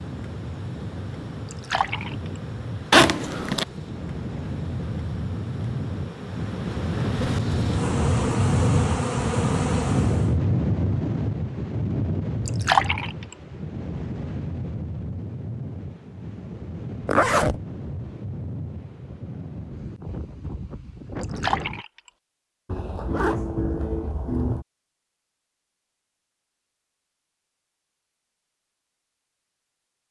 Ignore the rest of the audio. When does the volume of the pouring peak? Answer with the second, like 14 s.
13 s.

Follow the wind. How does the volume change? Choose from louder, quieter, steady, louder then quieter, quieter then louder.
louder then quieter.